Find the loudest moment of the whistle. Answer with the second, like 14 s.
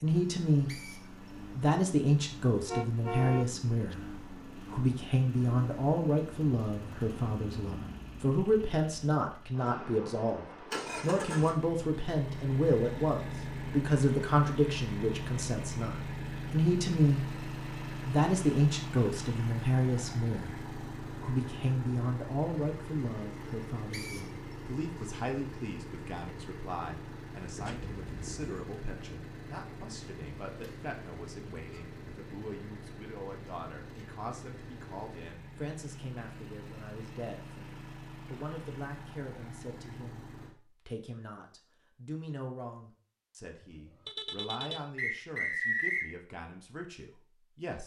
46 s.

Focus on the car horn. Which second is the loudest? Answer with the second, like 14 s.
3 s.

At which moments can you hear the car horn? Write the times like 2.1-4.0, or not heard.
2.6-4.0, 27.6-28.5, 43.6-44.9.